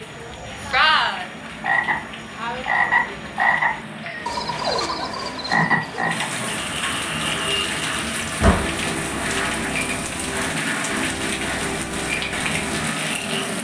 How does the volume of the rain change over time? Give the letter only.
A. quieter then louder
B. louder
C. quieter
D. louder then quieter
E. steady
B.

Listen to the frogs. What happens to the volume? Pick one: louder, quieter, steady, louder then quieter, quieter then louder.
quieter.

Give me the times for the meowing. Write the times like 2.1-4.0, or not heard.
4.0-5.0.